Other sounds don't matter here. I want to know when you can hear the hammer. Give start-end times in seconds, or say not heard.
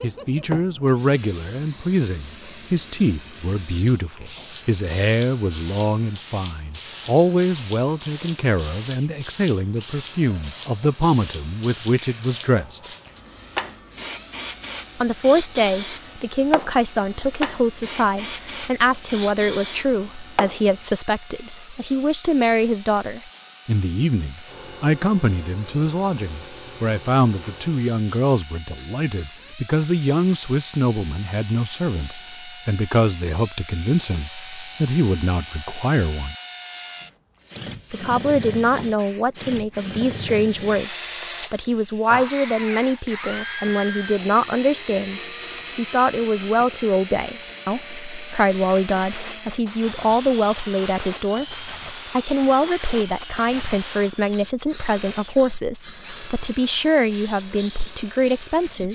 not heard.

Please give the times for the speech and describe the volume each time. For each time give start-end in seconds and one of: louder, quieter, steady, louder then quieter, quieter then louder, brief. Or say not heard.
0.0-12.8 steady
14.9-36.4 steady
37.9-58.8 steady.